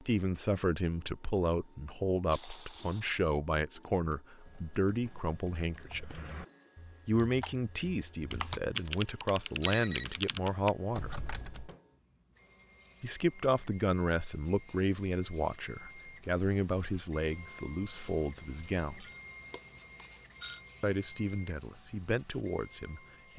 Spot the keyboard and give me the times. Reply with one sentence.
The keyboard can be heard from 4.1 to 11.8 s.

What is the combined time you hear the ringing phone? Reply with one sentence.
You can hear the ringing phone for 4 seconds altogether.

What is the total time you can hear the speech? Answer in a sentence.
The speech can be heard for 19 seconds in total.